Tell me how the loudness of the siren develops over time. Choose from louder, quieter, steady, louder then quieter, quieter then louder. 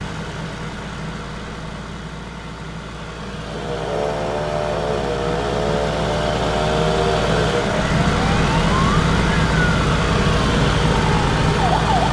steady.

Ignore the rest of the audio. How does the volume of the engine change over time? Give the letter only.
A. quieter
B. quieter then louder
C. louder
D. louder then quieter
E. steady
C.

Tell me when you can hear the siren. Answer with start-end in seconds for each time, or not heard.
3.4-12.0.